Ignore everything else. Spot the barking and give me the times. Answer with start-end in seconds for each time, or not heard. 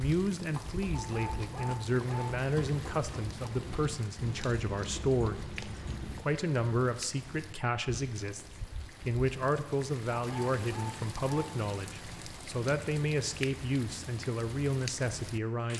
0.9-2.3, 10.1-11.5.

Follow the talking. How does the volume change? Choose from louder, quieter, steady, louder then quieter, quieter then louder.
steady.